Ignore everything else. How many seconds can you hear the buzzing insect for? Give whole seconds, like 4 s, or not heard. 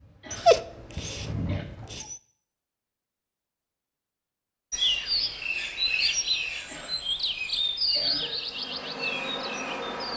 4 s.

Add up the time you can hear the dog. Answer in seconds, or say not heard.
2 s.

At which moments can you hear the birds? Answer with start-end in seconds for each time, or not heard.
4.7-10.1.